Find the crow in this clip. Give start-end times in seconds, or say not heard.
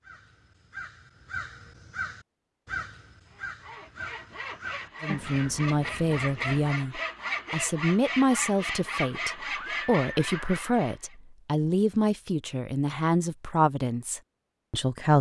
0.0-6.6.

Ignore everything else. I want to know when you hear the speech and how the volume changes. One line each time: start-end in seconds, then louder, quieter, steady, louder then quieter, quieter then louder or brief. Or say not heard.
5.0-15.1 steady.